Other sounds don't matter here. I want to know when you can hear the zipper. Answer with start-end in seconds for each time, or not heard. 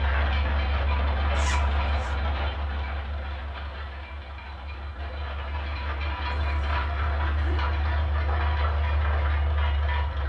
1.4-2.1, 6.3-7.7.